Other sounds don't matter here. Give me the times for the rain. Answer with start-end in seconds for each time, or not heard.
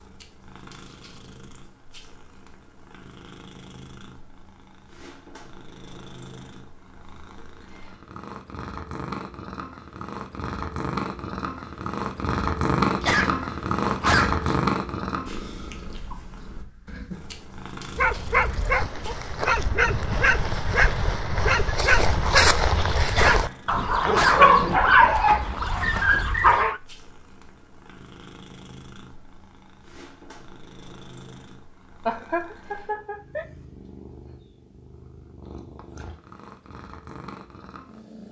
not heard.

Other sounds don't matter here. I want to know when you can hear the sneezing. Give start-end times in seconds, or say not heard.
13.0-14.6, 23.1-24.6.